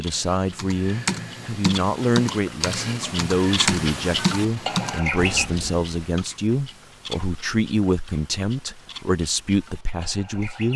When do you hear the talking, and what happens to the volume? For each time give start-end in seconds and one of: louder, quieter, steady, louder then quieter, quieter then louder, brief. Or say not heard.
0.0-10.7 steady.